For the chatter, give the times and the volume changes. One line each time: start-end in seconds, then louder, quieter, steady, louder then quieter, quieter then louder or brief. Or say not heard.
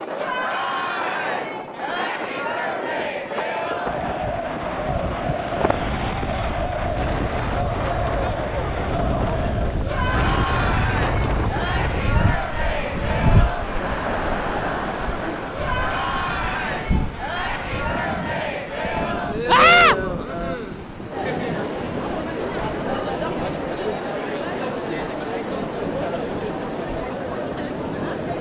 0.0-28.3 steady.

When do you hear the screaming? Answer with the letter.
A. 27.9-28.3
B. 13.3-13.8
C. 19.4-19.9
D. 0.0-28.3
C.